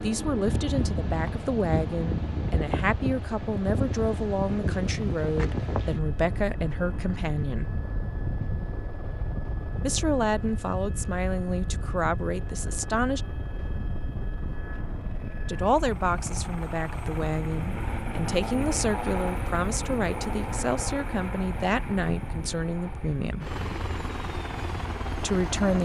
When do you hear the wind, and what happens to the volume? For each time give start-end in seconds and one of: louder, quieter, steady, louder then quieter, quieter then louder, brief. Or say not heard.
0.0-25.7 quieter.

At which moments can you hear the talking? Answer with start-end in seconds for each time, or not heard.
0.0-7.7, 9.8-13.2, 15.4-23.5, 25.1-25.7.